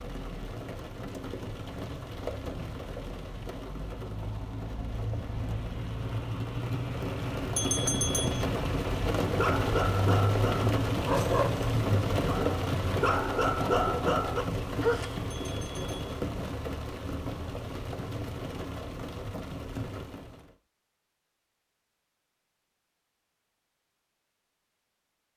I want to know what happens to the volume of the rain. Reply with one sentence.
The volume of the rain goes up, then down.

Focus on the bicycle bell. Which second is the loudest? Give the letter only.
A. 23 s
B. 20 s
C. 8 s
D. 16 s
C.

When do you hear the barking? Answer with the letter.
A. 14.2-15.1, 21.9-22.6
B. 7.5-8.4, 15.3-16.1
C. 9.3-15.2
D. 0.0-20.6
C.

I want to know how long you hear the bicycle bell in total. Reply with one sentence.
The bicycle bell can be heard for 2 seconds in total.